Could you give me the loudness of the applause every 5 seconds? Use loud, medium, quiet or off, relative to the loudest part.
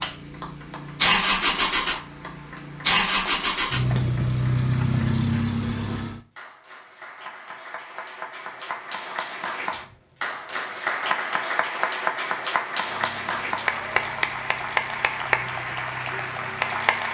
quiet, medium, loud, loud.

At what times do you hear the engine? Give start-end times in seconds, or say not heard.
0.0-6.2, 12.8-17.0.